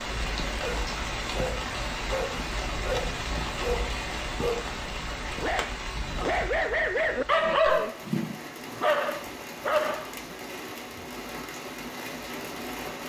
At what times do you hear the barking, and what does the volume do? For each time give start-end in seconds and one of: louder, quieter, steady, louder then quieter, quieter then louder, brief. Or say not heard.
0.6-10.3 louder.